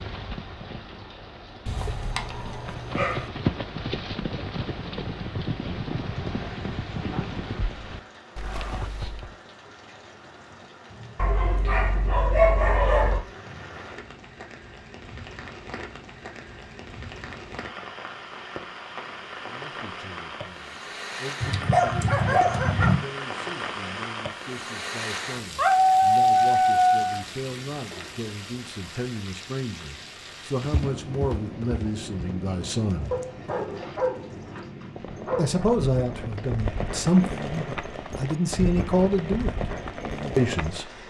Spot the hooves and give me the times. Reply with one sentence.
The hooves can be heard from 0.0 to 9.3 s and from 30.6 to 40.9 s.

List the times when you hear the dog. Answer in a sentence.
You can hear the dog from 1.6 to 3.3 s, from 11.2 to 13.2 s, from 21.4 to 23.0 s, from 25.6 to 27.2 s and from 33.1 to 35.6 s.